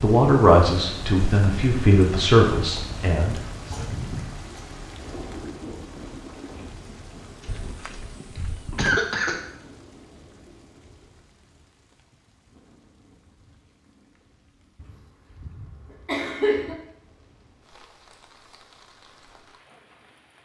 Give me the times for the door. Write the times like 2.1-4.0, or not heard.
7.5-9.0.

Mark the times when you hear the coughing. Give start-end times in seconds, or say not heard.
3.5-4.7, 7.4-9.3, 14.8-16.8.